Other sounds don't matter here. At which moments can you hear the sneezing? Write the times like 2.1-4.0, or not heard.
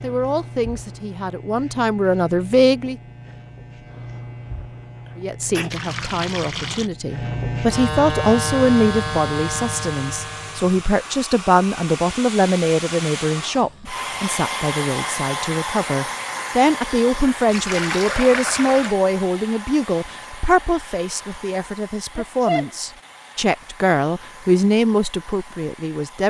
5.5-5.9, 22.1-22.7.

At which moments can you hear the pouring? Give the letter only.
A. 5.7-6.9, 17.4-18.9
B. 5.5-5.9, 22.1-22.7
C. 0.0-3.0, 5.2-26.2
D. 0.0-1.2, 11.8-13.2
A.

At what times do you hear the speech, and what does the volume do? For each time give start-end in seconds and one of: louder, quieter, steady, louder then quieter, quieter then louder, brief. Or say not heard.
0.0-3.0 brief
5.2-26.2 steady.